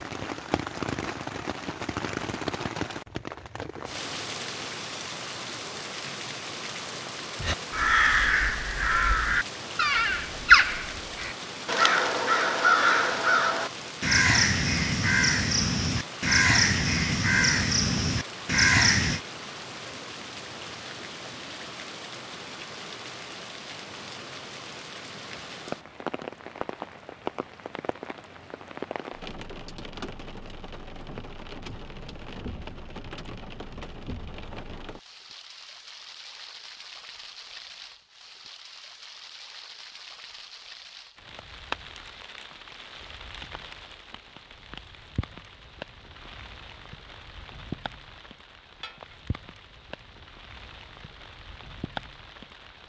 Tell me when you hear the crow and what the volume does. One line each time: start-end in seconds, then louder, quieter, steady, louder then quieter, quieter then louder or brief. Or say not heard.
7.4-19.2 steady.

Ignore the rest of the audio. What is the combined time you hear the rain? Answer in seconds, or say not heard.
53 s.